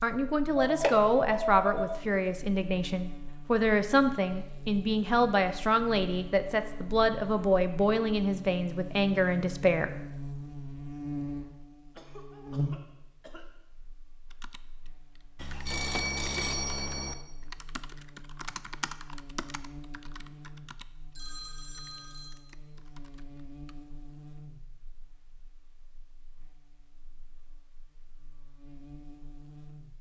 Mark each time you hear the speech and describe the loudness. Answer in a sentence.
You can hear the speech from 0.0 to 9.9 s, at a steady volume.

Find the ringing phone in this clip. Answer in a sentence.
You can hear the ringing phone from 0.6 to 2.0 s, from 15.3 to 17.1 s and from 21.1 to 22.4 s.